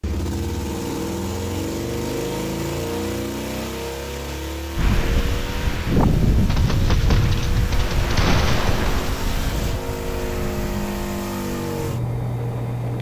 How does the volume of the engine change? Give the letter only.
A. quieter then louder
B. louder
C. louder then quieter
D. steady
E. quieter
A.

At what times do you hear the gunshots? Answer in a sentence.
The gunshots can be heard from 6.5 to 9.1 s.